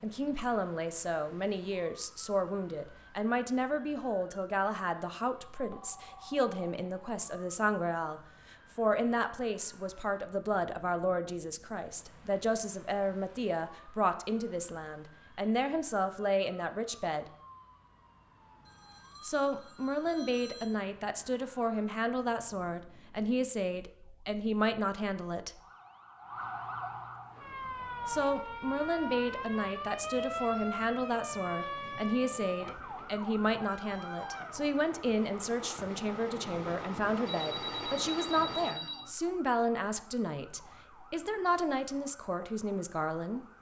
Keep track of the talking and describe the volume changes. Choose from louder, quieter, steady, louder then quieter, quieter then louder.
steady.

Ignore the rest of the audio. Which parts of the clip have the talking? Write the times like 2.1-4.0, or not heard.
0.0-17.2, 19.2-25.6, 28.1-43.5.